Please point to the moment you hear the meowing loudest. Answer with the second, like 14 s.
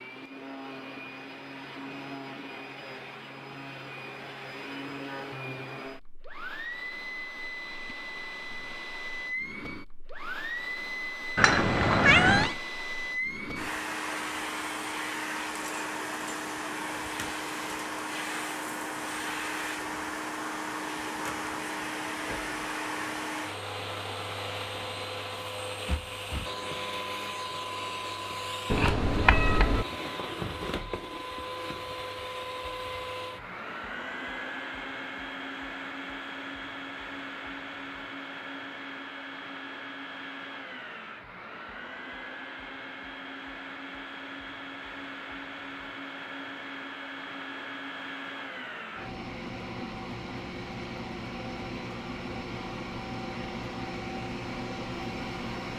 12 s.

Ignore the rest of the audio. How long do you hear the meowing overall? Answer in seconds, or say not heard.
2 s.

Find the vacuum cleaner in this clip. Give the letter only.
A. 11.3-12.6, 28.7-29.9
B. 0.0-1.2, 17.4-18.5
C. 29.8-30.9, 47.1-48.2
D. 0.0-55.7
D.